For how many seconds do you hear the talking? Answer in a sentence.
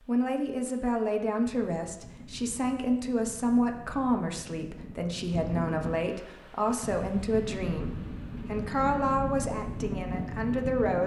You can hear the talking for 11 seconds altogether.